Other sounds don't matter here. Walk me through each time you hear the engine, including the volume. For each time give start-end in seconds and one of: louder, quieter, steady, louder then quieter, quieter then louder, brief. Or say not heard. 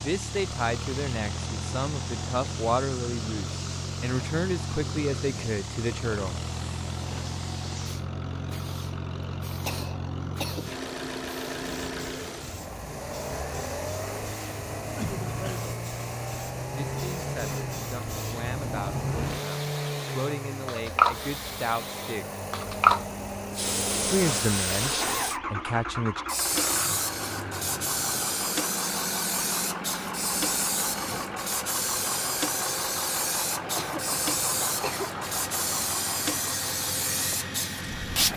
0.0-38.3 steady.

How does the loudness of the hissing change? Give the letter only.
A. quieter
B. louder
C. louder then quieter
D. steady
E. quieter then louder
B.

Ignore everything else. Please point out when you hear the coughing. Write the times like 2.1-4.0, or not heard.
9.7-10.7, 14.9-15.7, 33.8-35.1.